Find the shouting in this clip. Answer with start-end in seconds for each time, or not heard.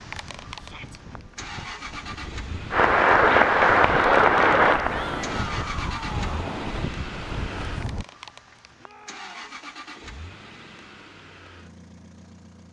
0.6-1.0, 4.8-6.5, 8.8-9.3.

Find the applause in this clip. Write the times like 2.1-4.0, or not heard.
2.7-5.8.